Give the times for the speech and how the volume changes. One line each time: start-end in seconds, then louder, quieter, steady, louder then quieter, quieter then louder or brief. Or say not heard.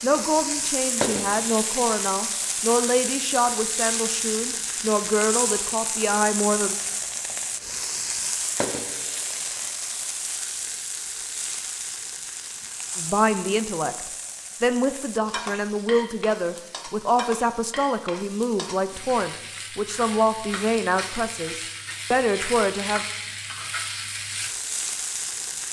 0.0-6.8 steady
12.9-23.0 steady.